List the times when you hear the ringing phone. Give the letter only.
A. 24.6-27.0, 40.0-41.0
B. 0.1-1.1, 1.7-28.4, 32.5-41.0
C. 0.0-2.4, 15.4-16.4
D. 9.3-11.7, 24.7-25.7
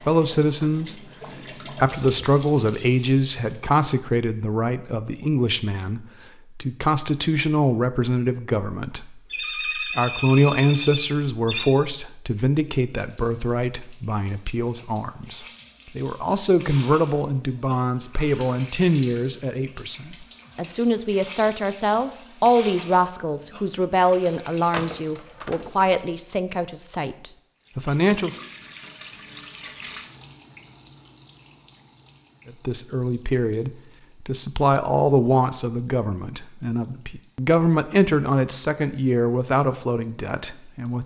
D.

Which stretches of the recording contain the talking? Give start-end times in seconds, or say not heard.
0.1-1.1, 1.7-28.4, 32.5-41.0.